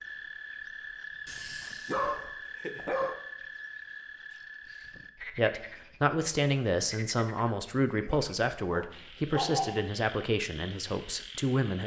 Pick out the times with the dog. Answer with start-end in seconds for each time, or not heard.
1.2-3.1, 8.1-9.8.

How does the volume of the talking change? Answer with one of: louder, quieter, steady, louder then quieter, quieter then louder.
quieter.